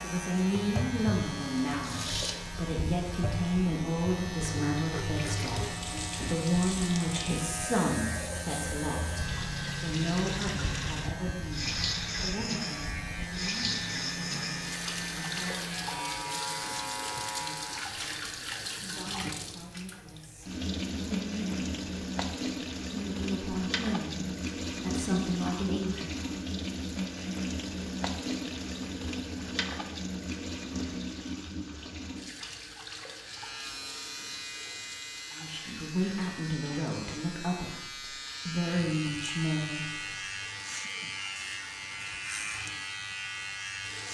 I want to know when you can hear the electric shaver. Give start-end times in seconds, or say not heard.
0.0-17.9, 33.1-44.0.